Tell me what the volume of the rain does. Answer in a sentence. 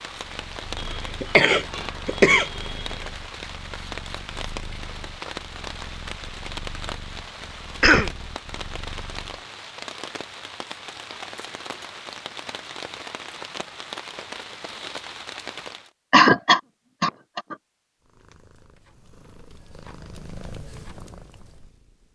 The loudness of the rain stays about the same.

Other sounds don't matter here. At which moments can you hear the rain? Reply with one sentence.
You can hear the rain from 0.0 to 15.9 s.